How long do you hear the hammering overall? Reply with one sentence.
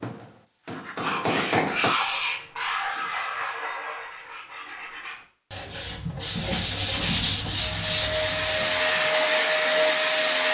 The hammering can be heard for 2 seconds in total.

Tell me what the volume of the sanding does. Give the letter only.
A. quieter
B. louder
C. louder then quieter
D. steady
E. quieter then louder
E.